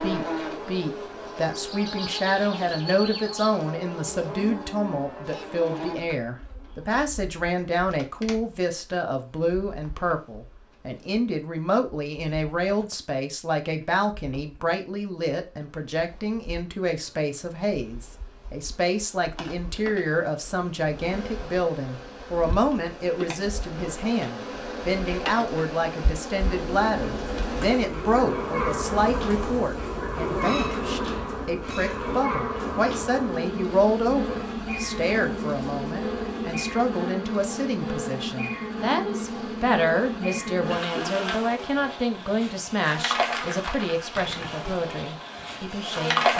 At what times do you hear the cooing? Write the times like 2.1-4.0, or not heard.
26.2-37.0.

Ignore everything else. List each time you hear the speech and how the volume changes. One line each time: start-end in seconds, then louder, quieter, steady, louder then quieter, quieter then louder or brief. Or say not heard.
0.0-46.3 steady.